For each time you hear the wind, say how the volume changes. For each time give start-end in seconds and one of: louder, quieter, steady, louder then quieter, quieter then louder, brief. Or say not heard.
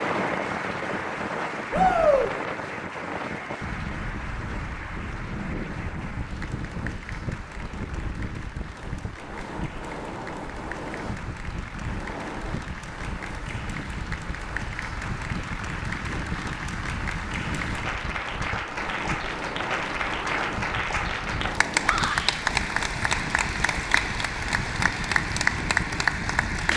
0.0-26.7 steady.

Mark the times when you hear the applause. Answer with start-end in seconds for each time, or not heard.
0.0-26.7.